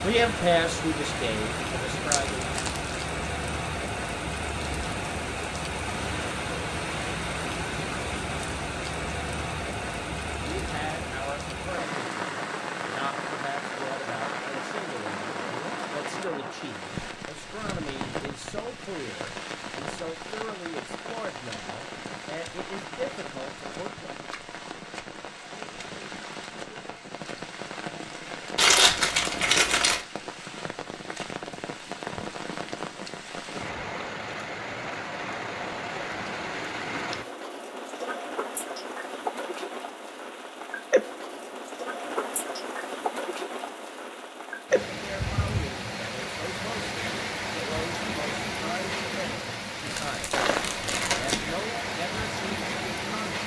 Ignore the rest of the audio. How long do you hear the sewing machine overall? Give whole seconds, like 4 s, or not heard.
not heard.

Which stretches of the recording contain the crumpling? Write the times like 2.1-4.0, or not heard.
2.1-3.0, 28.6-30.1, 49.9-51.6.